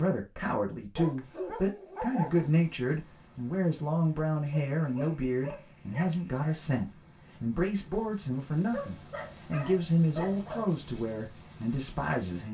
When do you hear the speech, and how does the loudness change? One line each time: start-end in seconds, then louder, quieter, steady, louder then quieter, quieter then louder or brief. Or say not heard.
0.0-12.5 steady.